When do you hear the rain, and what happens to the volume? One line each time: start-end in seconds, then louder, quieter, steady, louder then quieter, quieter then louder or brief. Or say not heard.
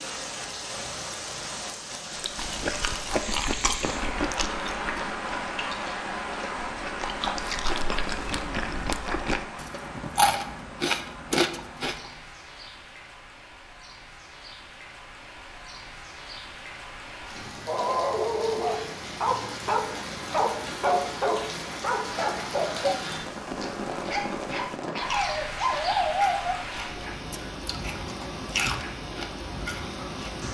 0.0-30.4 quieter then louder.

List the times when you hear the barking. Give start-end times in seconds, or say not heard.
17.6-26.6.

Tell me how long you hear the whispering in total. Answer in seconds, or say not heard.
not heard.